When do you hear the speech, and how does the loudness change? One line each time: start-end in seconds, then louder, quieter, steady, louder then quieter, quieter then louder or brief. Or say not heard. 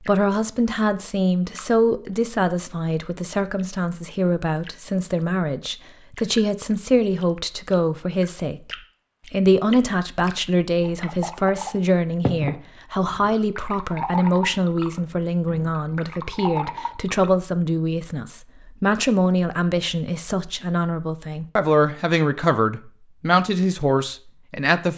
0.0-24.9 steady.